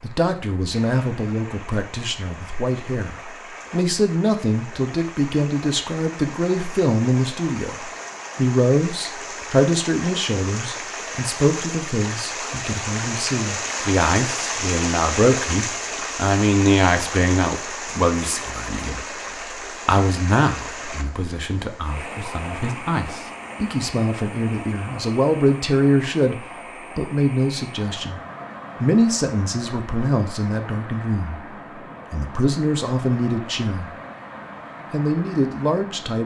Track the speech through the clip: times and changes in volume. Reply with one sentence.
You can hear the speech from 0.0 to 28.2 s, at a steady volume; briefly from 28.8 to 31.4 s; briefly from 32.1 to 33.9 s; and briefly from 34.9 to 36.2 s.